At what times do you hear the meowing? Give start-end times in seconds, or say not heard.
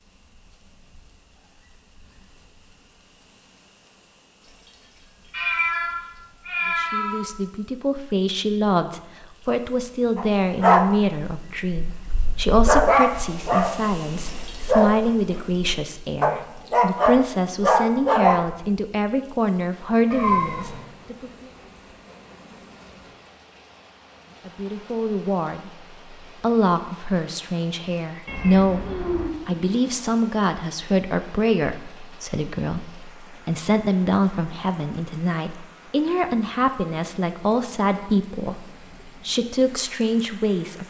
5.3-7.2, 20.1-20.8, 28.2-29.3.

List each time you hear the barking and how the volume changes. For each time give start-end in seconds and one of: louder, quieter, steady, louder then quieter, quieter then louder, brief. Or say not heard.
10.2-18.4 quieter then louder.